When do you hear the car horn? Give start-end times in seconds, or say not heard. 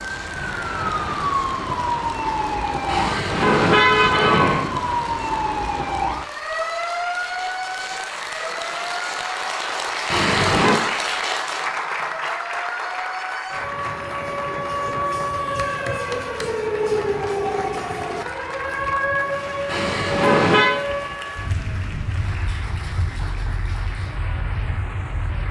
2.9-4.7, 10.1-10.8, 19.6-20.8.